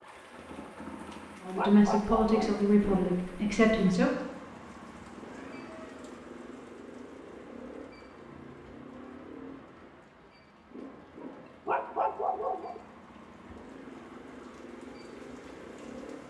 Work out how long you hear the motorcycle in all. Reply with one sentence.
You can hear the motorcycle for 16 seconds altogether.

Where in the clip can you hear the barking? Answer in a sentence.
You can hear the barking from 1.1 to 2.6 s and from 11.2 to 12.8 s.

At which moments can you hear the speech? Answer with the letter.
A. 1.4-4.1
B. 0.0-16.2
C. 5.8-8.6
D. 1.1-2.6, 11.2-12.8
A.